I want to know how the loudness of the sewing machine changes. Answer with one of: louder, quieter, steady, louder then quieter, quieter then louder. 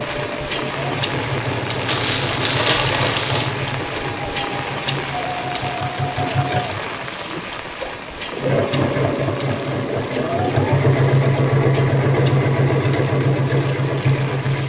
louder.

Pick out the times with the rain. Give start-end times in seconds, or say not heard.
0.0-14.6.